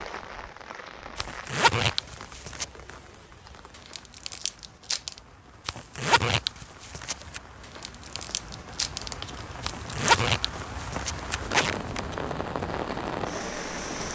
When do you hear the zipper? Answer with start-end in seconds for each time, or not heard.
1.1-2.6, 5.7-7.4, 9.6-12.0.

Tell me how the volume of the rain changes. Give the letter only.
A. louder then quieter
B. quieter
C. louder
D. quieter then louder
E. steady
D.